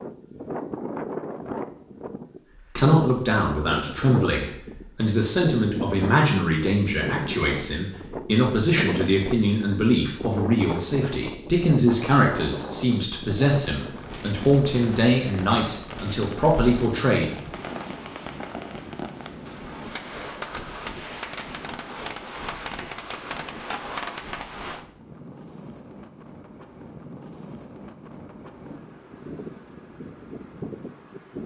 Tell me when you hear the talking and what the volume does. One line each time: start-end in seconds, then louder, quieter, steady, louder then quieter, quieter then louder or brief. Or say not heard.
2.5-17.3 steady.